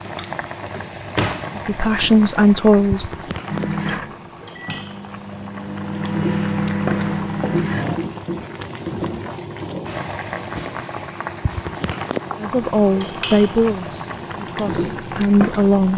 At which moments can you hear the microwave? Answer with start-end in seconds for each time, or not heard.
3.5-8.0.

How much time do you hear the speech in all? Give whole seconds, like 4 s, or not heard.
5 s.